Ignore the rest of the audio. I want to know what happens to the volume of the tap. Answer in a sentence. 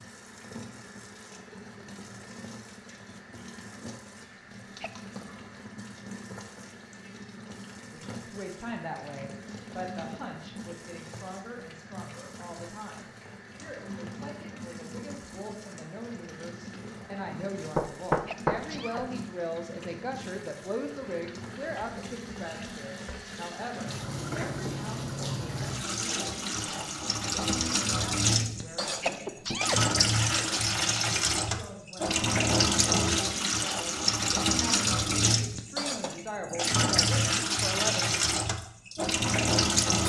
The volume of the tap goes up.